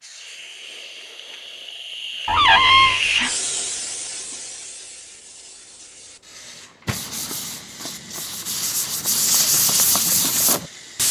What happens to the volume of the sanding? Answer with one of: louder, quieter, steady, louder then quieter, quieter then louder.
louder.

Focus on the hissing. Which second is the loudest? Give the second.
3 s.